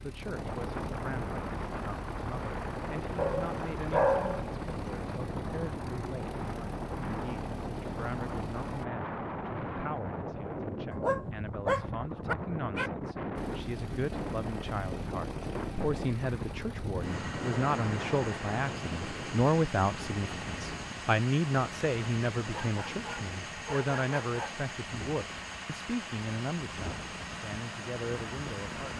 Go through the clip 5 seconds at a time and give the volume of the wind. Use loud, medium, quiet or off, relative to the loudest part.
loud, loud, loud, loud, medium, medium.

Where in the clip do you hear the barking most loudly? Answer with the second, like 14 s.
4 s.